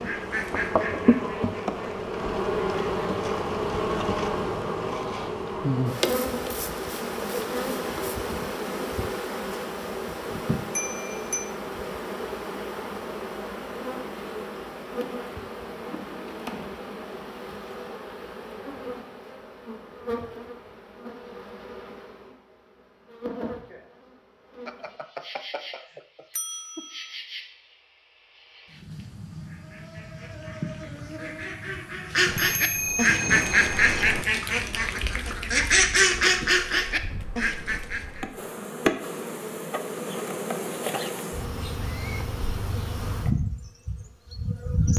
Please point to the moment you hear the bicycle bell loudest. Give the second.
33 s.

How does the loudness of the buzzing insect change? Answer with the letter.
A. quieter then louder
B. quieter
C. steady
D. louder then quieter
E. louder
A.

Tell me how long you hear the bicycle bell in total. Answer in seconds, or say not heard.
5 s.